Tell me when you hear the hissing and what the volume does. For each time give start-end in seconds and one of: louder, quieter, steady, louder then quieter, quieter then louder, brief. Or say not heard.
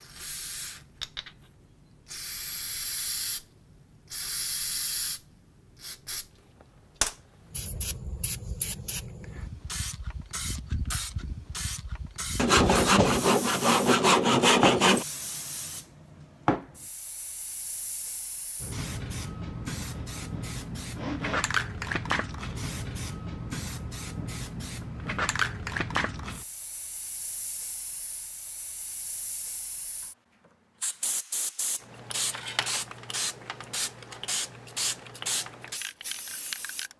0.0-36.9 steady.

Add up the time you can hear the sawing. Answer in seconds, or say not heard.
4 s.